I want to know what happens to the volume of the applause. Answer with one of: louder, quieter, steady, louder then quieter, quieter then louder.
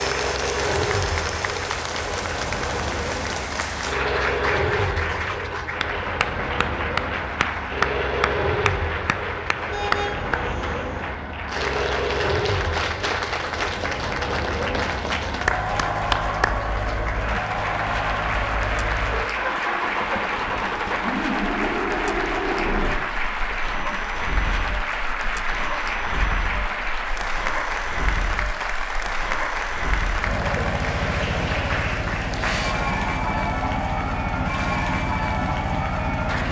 steady.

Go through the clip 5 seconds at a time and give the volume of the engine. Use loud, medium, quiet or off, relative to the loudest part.
loud, loud, loud, loud, loud, medium, loud, loud.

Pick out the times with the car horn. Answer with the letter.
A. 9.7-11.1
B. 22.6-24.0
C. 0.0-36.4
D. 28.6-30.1
A.